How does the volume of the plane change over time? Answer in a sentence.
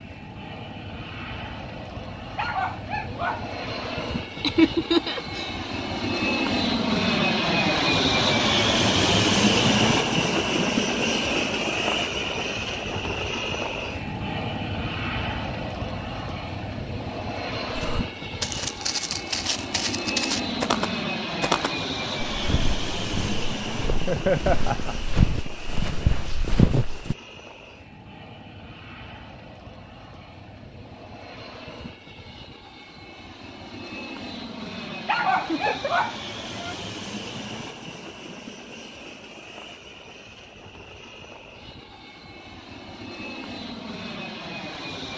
The loudness of the plane goes down.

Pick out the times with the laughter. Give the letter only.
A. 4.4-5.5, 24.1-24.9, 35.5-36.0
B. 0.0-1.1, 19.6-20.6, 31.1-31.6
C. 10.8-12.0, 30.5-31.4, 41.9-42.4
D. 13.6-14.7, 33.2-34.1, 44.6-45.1
A.